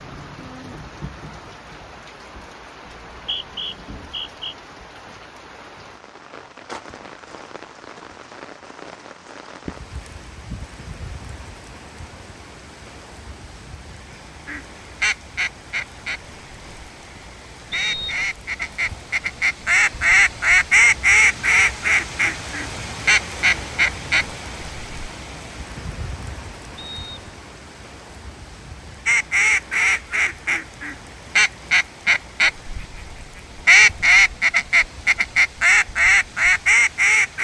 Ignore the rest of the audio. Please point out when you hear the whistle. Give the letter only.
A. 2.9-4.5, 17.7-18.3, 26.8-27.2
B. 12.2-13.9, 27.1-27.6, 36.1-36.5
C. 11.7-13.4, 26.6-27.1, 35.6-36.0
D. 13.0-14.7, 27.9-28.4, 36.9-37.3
A.